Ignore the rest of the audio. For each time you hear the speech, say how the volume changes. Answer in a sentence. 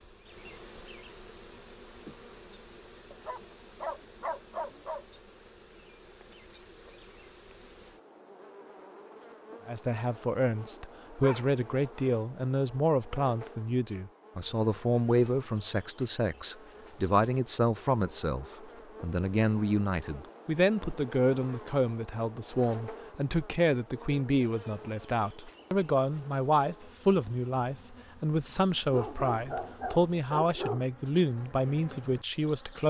You can hear the speech from 9.7 to 32.8 s, at a steady volume.